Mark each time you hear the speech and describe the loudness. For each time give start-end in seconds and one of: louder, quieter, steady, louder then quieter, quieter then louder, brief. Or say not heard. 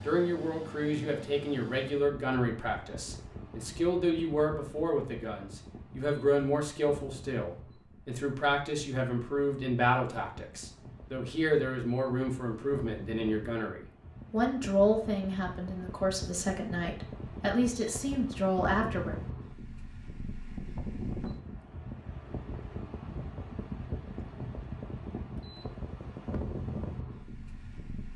0.1-19.1 steady.